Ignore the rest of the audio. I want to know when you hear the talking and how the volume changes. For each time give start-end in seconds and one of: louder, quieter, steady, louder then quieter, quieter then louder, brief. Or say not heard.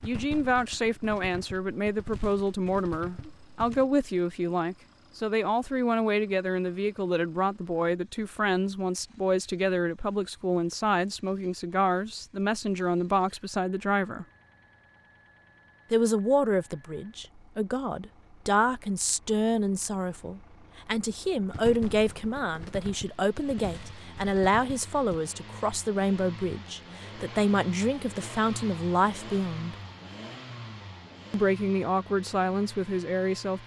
0.0-14.2 steady
15.9-29.8 steady
31.3-33.6 brief.